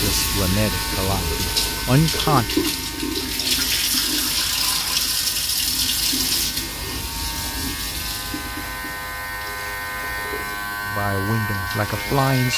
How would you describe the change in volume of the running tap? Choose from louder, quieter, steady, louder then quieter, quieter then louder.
quieter.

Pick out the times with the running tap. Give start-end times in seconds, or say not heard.
0.0-12.5.